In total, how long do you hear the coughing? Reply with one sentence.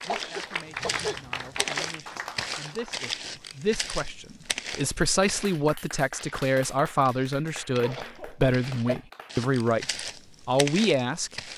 The coughing can be heard for 3 seconds in total.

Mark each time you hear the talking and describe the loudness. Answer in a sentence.
You can hear the talking from 0.0 to 11.4 s, getting louder.